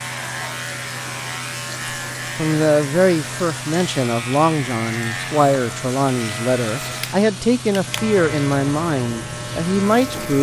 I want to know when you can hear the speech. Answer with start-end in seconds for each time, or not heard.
2.4-10.3.